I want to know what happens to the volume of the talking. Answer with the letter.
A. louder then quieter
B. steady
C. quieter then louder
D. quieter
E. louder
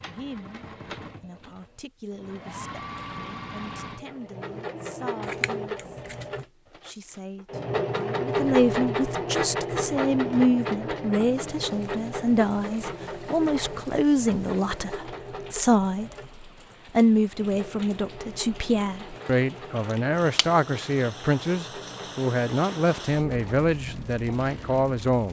E.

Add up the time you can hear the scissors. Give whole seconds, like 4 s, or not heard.
2 s.